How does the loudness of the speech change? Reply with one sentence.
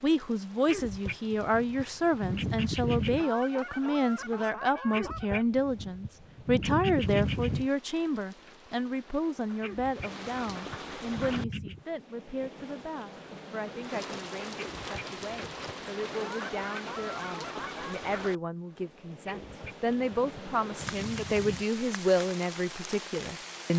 The loudness of the speech goes down, then up.